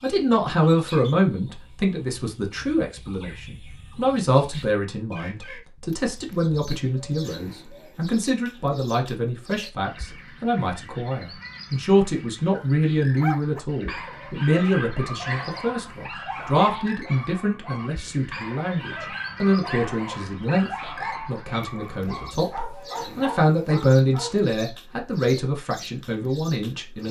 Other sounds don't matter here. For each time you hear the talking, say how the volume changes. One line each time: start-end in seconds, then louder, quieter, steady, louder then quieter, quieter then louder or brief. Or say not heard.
0.0-27.0 steady.